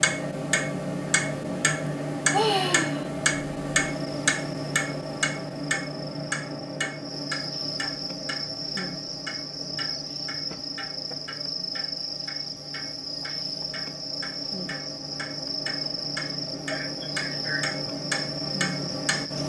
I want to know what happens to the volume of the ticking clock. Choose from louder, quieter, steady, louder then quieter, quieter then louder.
quieter then louder.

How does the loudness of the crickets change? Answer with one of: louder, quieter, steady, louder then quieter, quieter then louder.
louder.